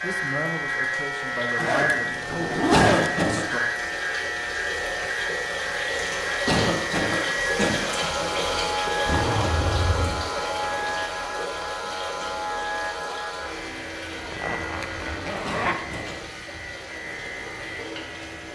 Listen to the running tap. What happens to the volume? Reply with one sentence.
The volume of the running tap goes up, then down.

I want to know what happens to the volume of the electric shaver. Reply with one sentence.
The volume of the electric shaver goes down.